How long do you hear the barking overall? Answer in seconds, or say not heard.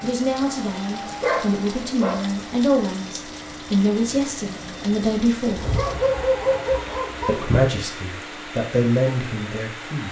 4 s.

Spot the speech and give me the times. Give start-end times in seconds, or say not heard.
0.0-5.7, 7.2-10.0.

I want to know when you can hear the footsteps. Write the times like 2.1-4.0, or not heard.
not heard.